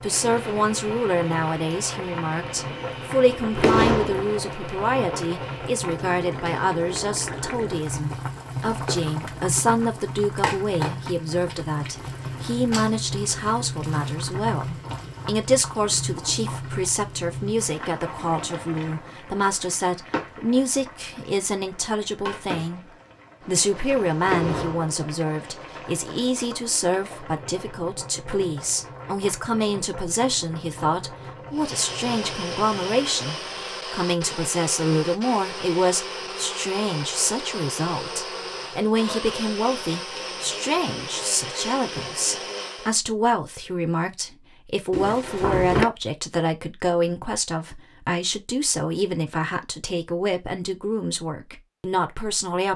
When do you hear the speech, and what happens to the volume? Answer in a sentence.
You can hear the speech from 0.0 to 22.9 s, at a steady volume; and from 23.4 to 52.7 s, at a steady volume.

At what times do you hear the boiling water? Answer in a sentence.
You can hear the boiling water from 0.0 to 33.7 s.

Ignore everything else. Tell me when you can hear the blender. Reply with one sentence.
You can hear the blender from 0.0 to 5.8 s and from 31.5 to 43.0 s.